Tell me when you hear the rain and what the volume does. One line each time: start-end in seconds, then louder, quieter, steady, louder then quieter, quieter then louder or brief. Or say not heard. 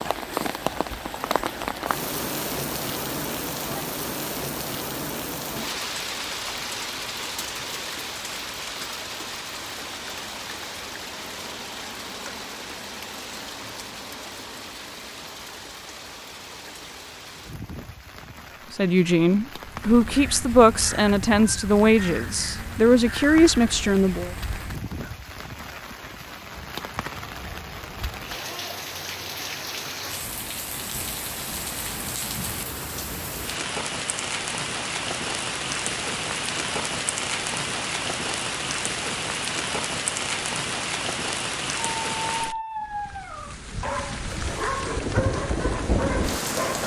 0.0-46.8 quieter then louder.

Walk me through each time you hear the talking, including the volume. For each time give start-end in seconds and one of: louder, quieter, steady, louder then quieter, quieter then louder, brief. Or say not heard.
18.7-24.3 steady.